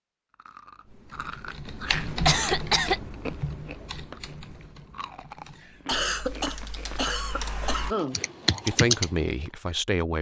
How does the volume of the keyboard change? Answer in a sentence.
The volume of the keyboard goes down, then up.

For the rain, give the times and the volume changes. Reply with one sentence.
The rain can't be heard in this clip.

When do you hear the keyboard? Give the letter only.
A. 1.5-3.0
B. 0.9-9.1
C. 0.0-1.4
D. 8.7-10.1
B.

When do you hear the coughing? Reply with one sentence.
You can hear the coughing from 2.2 to 3.0 s and from 5.8 to 8.2 s.